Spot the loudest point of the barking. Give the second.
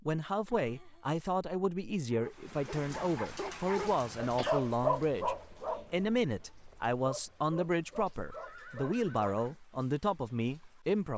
5 s.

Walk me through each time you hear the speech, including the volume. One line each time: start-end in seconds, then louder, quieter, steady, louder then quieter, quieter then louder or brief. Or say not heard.
0.0-11.1 steady.